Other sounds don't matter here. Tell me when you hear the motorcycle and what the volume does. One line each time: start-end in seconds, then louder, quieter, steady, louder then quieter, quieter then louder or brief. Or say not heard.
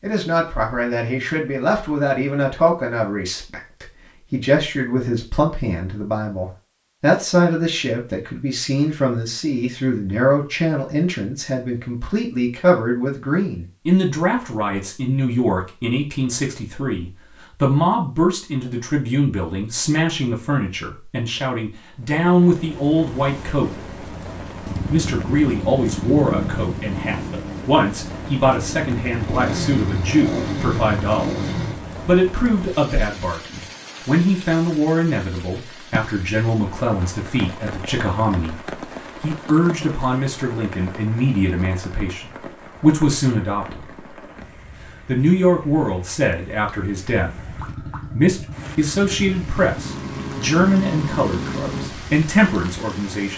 24.6-31.8 quieter then louder
47.2-52.0 louder.